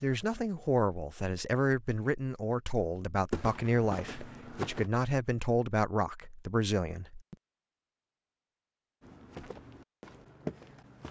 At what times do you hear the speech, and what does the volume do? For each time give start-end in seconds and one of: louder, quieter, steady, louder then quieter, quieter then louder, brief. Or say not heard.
0.0-7.3 steady.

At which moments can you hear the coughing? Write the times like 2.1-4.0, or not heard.
not heard.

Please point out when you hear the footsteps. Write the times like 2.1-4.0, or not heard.
3.3-4.9, 9.0-11.0.